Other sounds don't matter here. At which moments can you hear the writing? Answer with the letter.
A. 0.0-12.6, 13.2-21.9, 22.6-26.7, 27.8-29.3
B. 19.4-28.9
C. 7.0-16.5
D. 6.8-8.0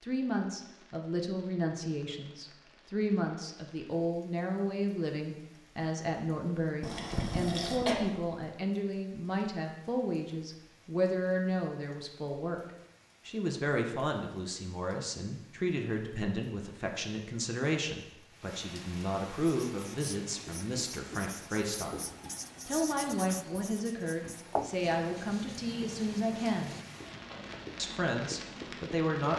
B.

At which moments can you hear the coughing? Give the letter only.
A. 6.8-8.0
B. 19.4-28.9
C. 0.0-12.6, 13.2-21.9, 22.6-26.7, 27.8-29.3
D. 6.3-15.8
A.